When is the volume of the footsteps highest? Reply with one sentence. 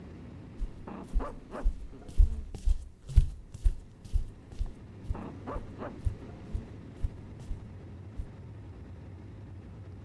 The volume of the footsteps peaks at 3 seconds.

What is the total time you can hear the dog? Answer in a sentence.
The dog can be heard for 3 seconds in total.